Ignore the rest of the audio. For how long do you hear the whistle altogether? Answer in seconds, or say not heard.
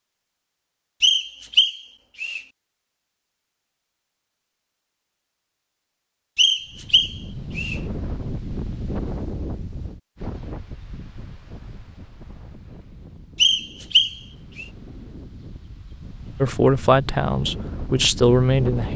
4 s.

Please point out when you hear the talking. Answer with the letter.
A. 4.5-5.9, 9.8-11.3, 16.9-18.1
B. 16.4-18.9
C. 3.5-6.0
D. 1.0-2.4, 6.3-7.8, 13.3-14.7
B.